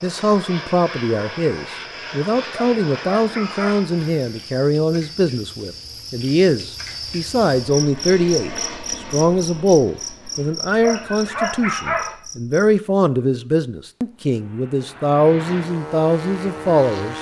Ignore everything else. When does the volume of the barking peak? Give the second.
12 s.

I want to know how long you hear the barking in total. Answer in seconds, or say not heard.
3 s.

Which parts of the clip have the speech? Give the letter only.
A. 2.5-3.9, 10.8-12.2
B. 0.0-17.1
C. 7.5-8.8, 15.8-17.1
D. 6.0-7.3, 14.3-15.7
B.